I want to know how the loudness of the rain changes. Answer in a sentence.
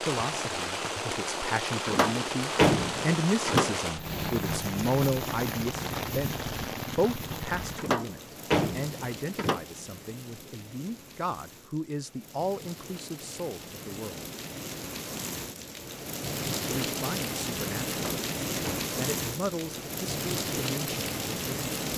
The loudness of the rain goes down, then up.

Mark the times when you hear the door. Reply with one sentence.
You can hear the door from 1.9 to 3.8 s, from 7.8 to 9.6 s and from 17.9 to 18.9 s.